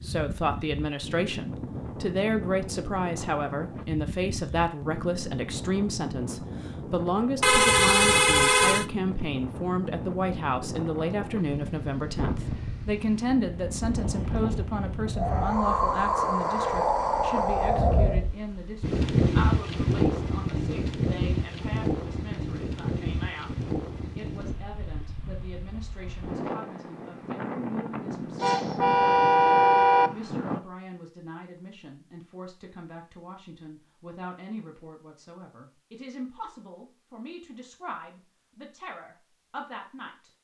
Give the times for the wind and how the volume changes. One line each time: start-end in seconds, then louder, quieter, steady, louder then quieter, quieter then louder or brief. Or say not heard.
0.0-30.6 louder then quieter.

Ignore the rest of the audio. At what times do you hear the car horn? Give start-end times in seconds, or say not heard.
7.4-8.8, 28.4-30.1.